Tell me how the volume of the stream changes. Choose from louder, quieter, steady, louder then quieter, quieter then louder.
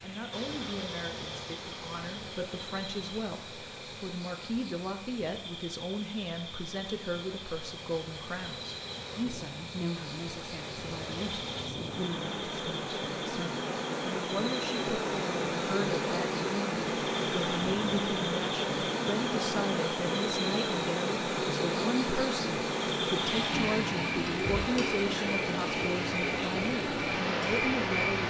louder.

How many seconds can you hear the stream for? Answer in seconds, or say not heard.
28 s.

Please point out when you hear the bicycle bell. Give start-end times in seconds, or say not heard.
not heard.